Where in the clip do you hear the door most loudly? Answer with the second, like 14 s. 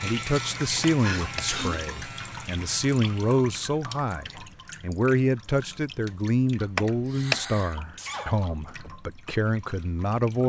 7 s.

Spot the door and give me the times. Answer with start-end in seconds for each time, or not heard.
0.8-1.5, 6.8-7.4.